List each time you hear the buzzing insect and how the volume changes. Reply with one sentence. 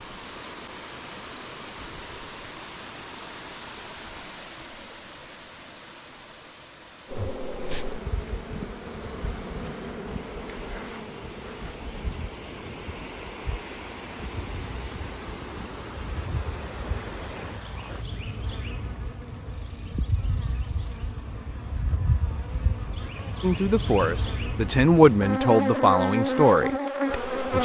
You can hear the buzzing insect from 7.0 to 27.6 s, getting quieter then louder.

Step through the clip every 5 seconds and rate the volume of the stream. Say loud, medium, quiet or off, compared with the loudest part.
loud, medium, loud, loud, off, off.